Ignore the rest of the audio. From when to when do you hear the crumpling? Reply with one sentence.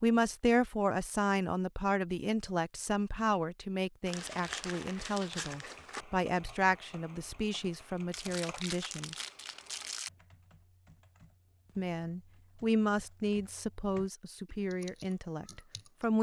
The crumpling can be heard from 4.0 to 6.0 s and from 8.1 to 10.1 s.